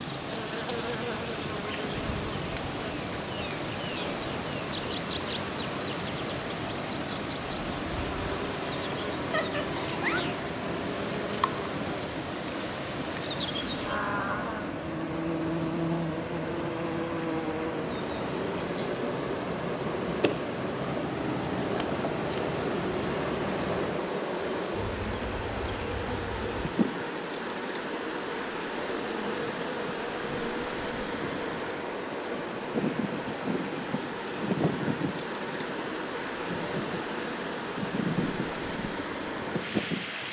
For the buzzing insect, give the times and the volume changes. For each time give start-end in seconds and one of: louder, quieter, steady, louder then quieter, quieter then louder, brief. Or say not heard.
0.0-40.2 steady.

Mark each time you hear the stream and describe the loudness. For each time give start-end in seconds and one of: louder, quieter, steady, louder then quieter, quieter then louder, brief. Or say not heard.
0.0-40.2 steady.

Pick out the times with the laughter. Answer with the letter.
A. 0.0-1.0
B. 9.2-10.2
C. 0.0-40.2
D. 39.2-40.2
B.